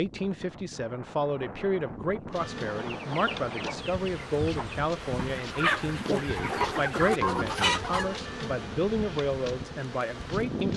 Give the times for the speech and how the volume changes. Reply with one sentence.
You can hear the speech from 0.0 to 10.7 s, at a steady volume.